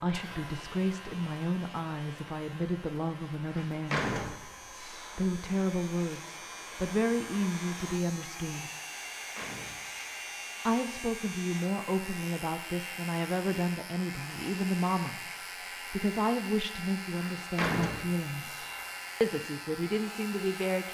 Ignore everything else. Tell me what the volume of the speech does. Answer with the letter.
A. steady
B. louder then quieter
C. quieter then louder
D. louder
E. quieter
A.